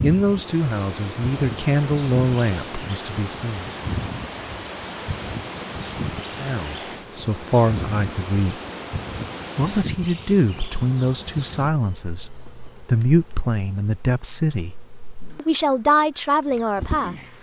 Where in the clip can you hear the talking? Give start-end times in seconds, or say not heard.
0.0-3.7, 6.4-8.6, 9.6-14.7, 15.3-17.1.